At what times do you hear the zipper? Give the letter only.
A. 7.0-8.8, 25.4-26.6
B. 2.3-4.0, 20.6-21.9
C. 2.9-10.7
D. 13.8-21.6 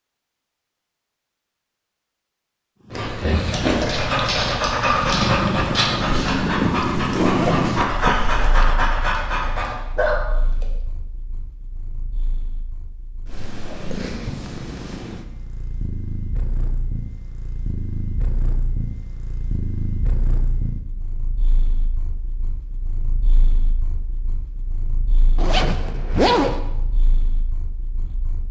A.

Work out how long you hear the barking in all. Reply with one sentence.
The barking can be heard for 8 seconds in total.